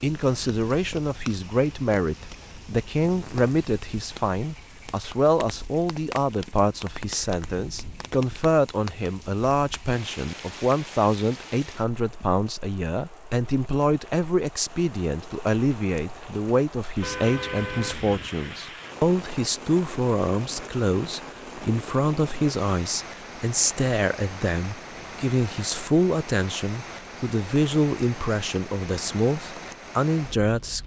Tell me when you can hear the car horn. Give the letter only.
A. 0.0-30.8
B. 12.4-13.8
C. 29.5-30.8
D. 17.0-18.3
D.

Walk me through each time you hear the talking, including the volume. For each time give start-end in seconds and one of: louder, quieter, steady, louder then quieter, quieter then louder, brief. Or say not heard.
0.0-30.8 steady.